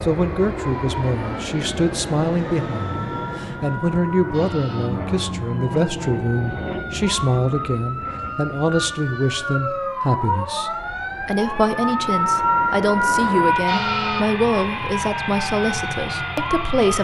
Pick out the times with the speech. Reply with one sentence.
The speech can be heard from 0.0 to 16.9 s.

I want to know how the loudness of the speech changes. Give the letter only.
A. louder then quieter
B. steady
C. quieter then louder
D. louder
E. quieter
B.